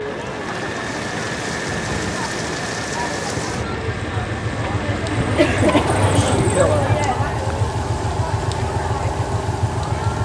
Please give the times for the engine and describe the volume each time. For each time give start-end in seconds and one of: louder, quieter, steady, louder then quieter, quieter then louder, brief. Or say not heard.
0.0-10.1 steady.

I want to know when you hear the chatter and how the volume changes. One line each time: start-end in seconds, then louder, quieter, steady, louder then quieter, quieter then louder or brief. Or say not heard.
0.0-10.1 louder then quieter.